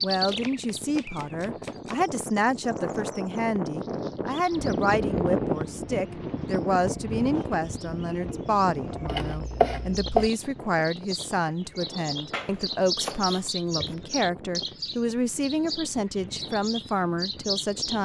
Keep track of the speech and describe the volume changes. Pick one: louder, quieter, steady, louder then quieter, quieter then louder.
steady.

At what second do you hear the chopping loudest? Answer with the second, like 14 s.
10 s.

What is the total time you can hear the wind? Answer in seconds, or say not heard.
18 s.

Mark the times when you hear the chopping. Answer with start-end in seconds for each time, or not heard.
0.2-2.0, 9.1-10.3, 12.3-13.9.